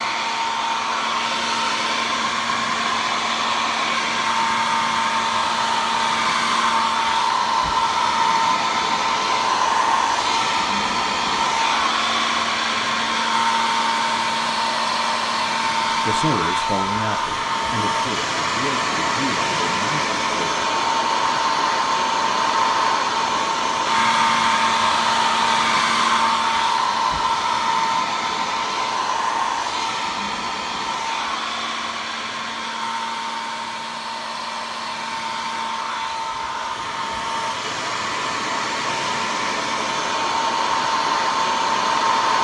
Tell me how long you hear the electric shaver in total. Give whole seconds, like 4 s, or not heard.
not heard.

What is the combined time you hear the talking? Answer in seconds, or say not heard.
5 s.